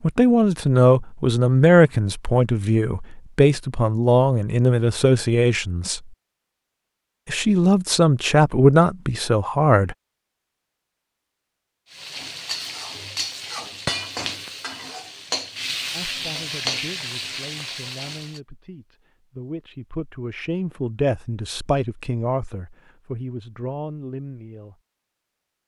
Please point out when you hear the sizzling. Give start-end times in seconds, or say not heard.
11.9-18.4.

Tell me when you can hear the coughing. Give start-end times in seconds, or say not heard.
not heard.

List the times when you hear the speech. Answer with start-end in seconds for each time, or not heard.
0.0-6.1, 7.2-9.9, 15.9-24.8.